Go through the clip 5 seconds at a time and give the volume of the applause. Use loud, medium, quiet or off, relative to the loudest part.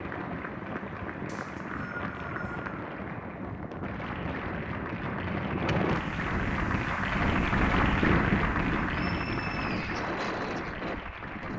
medium, loud, medium.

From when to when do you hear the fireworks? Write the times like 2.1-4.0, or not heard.
not heard.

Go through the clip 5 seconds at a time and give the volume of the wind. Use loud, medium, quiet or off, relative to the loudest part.
medium, loud, medium.